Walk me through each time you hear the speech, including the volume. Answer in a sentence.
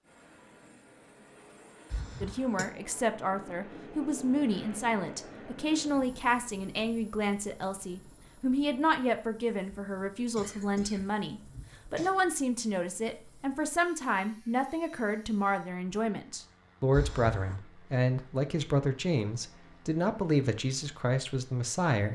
The speech can be heard from 2.2 to 22.1 s, at a steady volume.